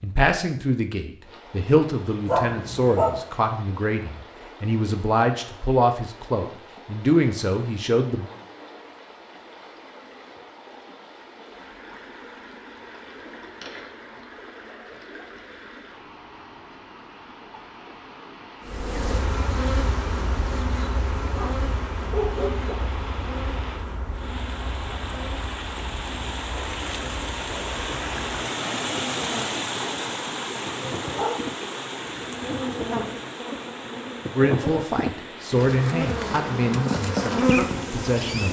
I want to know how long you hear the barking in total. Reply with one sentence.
The barking can be heard for 3 seconds in total.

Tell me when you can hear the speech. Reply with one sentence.
The speech can be heard from 0.0 to 8.2 s and from 34.4 to 38.4 s.